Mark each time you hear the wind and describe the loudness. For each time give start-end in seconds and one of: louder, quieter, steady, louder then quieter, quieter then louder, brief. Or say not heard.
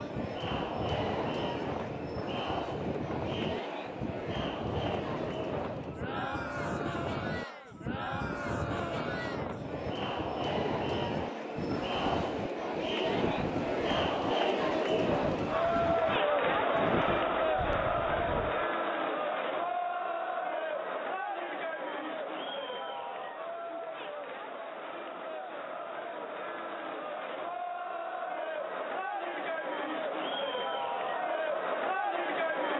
0.0-18.6 steady.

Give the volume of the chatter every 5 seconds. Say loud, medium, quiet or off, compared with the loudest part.
medium, medium, loud, loud, medium, medium, loud.